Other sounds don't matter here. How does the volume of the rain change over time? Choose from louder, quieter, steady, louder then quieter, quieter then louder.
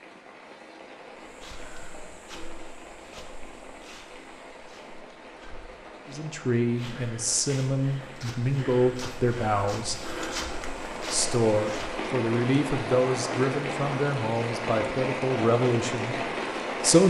louder.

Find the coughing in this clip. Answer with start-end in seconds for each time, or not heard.
not heard.